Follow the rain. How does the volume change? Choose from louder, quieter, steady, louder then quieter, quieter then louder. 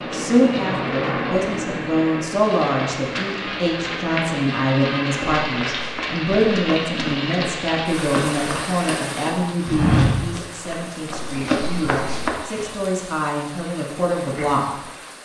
quieter.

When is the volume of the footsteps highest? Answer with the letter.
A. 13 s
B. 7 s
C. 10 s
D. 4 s
C.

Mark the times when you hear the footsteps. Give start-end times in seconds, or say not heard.
5.1-12.7.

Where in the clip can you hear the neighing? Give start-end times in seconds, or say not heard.
not heard.